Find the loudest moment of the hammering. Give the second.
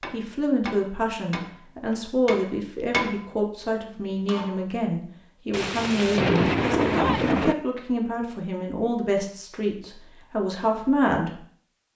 3 s.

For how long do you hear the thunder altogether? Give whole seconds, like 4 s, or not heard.
2 s.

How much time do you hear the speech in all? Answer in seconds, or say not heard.
11 s.